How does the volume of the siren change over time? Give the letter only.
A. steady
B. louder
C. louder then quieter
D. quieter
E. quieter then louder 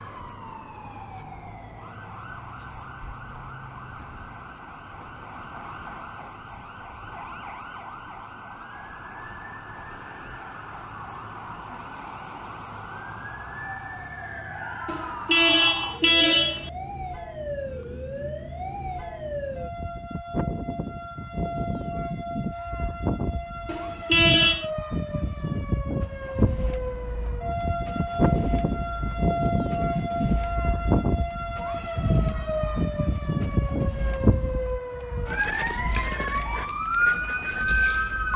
B.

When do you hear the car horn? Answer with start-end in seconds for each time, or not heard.
14.8-16.7, 23.6-24.7.